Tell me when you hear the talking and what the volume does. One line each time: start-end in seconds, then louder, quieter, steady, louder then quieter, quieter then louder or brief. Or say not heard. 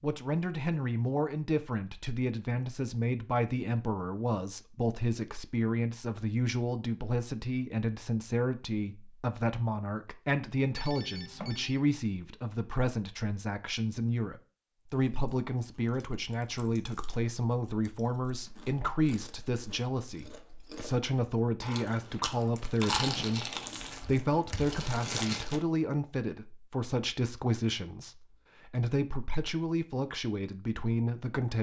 0.0-31.5 steady.